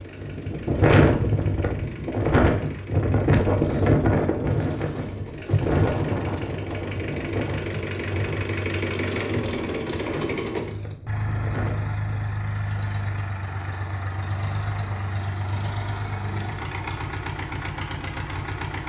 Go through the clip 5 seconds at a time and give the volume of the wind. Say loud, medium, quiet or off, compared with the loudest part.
loud, medium, quiet, off.